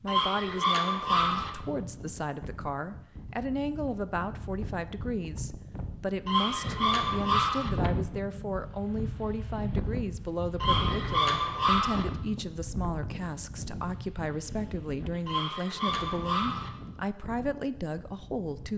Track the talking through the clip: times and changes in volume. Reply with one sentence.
You can hear the talking from 0.0 to 18.7 s, at a steady volume.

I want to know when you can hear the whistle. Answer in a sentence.
The whistle can't be heard in this clip.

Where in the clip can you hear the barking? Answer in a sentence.
The barking can be heard from 0.1 to 1.5 s, from 6.2 to 7.7 s, from 10.6 to 12.1 s and from 15.2 to 16.7 s.